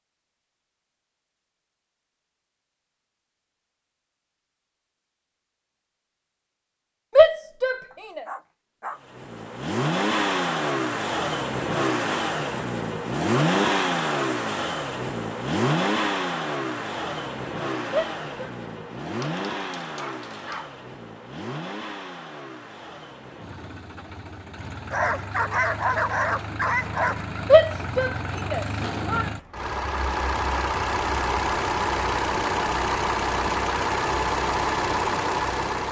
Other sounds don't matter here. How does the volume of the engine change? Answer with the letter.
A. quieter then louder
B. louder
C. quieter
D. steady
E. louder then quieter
A.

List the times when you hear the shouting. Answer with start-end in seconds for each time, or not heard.
7.2-8.2, 17.9-18.5, 27.5-29.2.